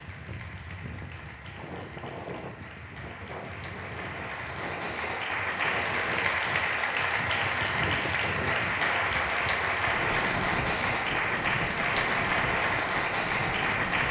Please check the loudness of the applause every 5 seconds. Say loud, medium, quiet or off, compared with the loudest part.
quiet, loud, loud.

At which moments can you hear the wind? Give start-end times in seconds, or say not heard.
0.0-14.0.